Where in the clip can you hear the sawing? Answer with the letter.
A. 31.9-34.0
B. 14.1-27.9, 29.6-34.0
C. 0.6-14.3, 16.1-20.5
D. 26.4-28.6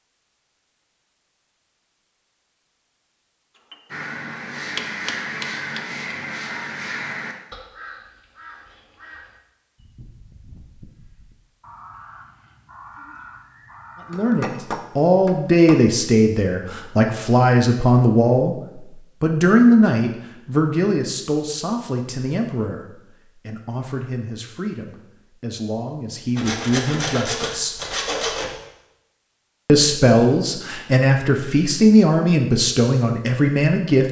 D.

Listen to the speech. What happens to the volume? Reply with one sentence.
The loudness of the speech goes down, then up.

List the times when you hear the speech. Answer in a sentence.
The speech can be heard from 14.1 to 27.9 s and from 29.6 to 34.0 s.